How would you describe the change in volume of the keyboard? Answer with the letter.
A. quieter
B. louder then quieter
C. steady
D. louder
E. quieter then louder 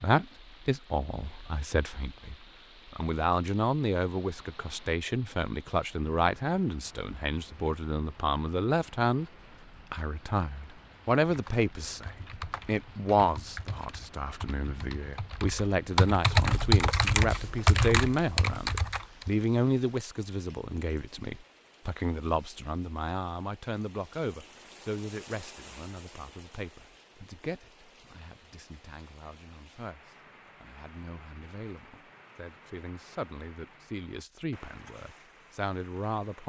D.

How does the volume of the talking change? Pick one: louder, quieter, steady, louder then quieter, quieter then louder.
quieter.